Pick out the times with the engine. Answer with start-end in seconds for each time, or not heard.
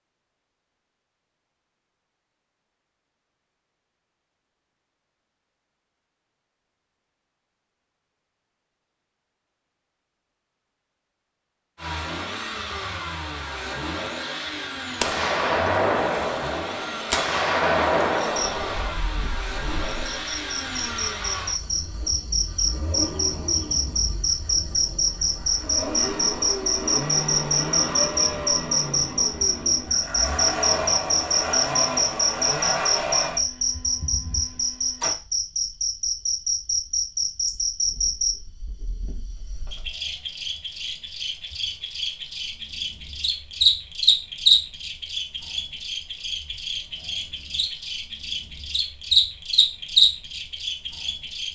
11.8-35.1.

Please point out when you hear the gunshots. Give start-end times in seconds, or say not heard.
15.0-18.9.